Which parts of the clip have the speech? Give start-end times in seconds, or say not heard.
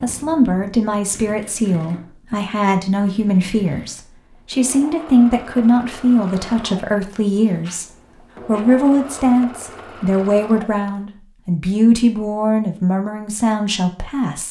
0.0-7.8, 8.4-14.4.